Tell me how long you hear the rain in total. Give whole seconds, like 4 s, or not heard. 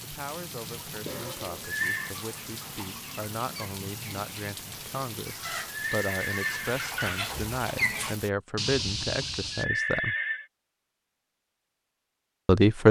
8 s.